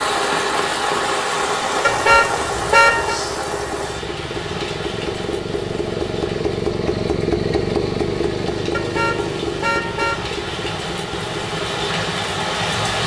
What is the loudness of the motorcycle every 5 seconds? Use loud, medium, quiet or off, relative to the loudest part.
medium, loud, medium.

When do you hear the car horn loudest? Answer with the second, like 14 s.
3 s.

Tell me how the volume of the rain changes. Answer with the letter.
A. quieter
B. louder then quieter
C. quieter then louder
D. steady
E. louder
C.